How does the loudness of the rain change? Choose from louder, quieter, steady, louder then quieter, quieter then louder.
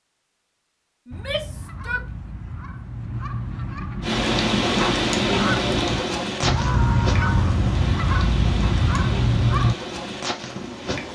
quieter.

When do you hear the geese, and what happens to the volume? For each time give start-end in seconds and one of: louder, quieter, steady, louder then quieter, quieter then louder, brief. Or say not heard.
1.1-9.8 louder.